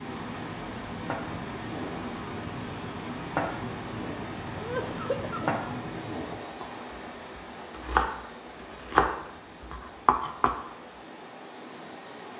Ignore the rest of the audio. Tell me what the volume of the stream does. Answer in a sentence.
The loudness of the stream goes down.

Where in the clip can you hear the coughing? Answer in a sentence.
You can hear the coughing from 4.5 to 5.5 s.